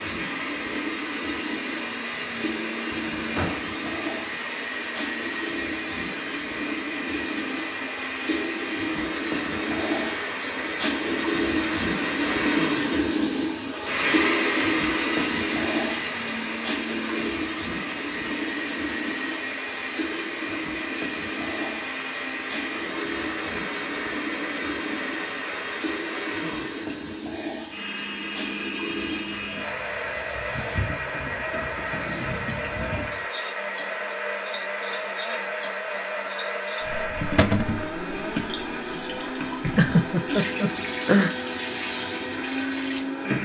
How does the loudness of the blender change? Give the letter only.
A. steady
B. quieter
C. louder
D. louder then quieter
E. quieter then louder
A.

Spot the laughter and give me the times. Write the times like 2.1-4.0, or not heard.
39.8-41.4.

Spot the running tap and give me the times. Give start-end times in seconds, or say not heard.
0.0-43.4.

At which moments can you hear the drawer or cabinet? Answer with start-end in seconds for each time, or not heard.
2.9-3.7, 37.4-37.9.